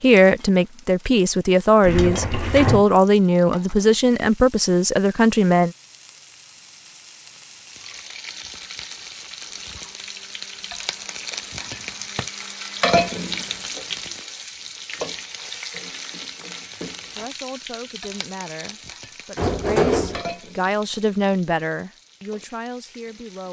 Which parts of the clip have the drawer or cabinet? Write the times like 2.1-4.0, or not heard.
1.8-2.9, 19.4-20.2.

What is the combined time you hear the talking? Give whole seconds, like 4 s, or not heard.
12 s.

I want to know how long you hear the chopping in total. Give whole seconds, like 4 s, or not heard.
not heard.